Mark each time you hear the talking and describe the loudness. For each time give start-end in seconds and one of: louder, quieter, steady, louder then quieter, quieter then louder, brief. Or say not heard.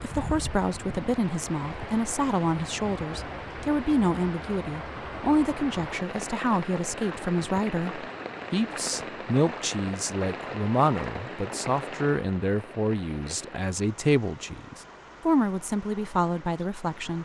0.0-17.1 steady.